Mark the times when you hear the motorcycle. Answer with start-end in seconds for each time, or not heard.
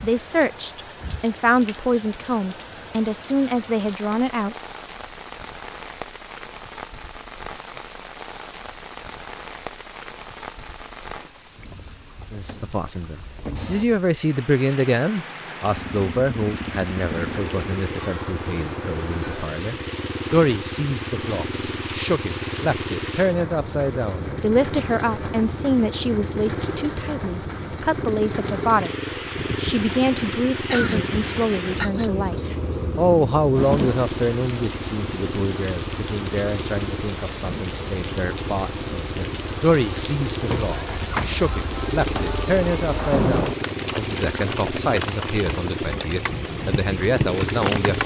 15.7-48.0.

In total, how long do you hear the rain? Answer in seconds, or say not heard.
48 s.